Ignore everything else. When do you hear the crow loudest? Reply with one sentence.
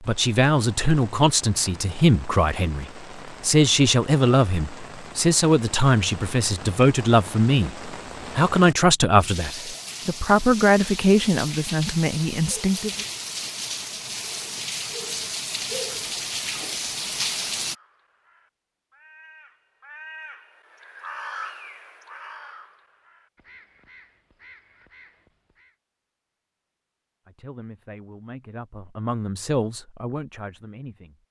The loudest moment of the crow is at 21 seconds.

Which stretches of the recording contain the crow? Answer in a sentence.
You can hear the crow from 17.6 to 25.8 s.